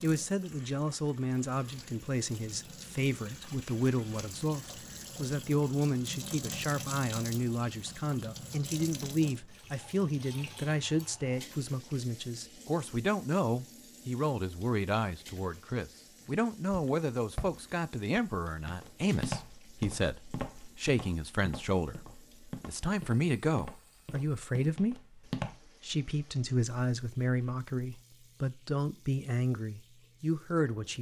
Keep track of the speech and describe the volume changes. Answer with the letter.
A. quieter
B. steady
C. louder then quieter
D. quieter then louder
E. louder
B.